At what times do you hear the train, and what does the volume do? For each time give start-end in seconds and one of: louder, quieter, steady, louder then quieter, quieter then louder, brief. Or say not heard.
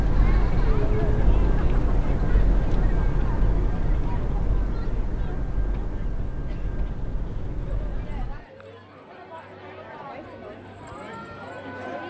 0.0-8.4 quieter.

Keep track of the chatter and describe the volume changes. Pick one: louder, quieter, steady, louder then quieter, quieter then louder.
quieter then louder.